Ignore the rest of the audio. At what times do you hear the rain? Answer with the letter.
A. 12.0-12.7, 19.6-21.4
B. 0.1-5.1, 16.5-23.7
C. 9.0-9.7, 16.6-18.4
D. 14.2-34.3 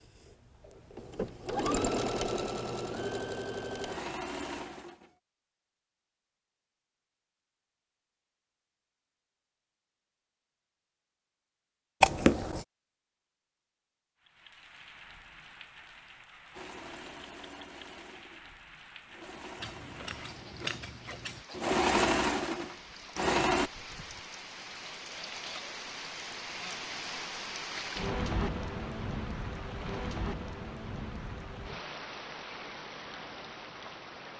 D.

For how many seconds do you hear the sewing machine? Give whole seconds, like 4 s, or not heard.
12 s.